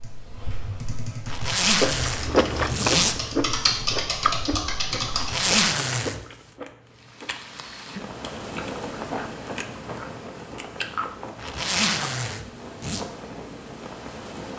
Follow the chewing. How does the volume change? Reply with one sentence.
The loudness of the chewing goes down, then up.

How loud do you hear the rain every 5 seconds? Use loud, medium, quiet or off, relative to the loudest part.
off, loud, loud.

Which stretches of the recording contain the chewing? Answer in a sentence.
You can hear the chewing from 1.8 to 12.2 s.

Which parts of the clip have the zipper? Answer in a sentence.
The zipper can be heard from 1.2 to 3.1 s, from 5.1 to 6.2 s and from 11.3 to 13.1 s.